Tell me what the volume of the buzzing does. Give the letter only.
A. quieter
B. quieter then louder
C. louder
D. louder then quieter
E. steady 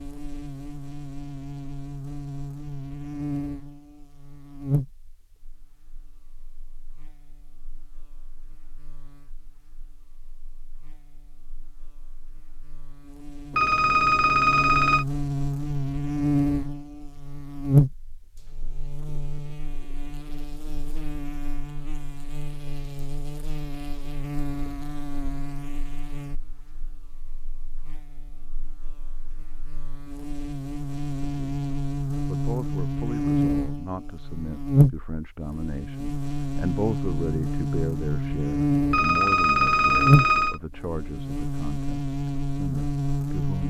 C.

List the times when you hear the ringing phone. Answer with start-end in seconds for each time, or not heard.
13.5-15.1, 38.9-40.6.